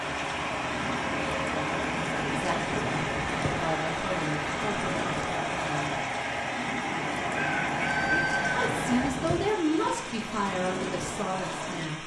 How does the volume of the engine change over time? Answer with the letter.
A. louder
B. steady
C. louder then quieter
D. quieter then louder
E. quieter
B.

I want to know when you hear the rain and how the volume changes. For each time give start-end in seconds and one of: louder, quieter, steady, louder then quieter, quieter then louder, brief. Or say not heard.
0.0-12.0 steady.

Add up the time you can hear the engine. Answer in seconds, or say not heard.
9 s.